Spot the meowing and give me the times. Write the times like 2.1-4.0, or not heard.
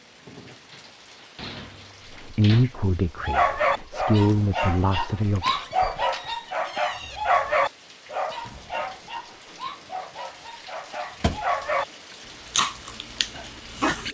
not heard.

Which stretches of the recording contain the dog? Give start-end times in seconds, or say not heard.
3.1-11.8, 12.5-14.0.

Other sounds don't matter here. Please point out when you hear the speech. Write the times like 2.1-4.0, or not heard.
2.0-5.5.